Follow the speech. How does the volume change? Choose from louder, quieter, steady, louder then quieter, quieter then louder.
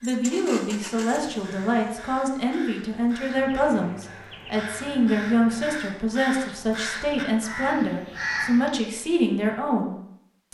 steady.